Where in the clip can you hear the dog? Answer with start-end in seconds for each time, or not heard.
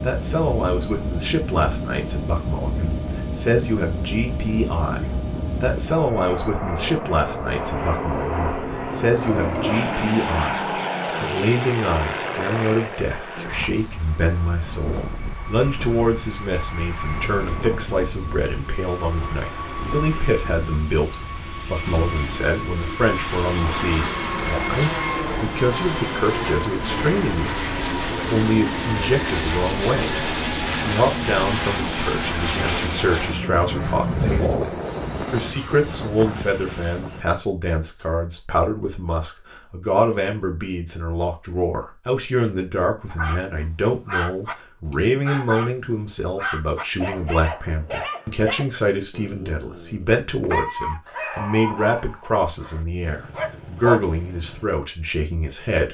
43.0-54.6.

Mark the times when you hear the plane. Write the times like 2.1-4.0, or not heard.
0.0-37.2.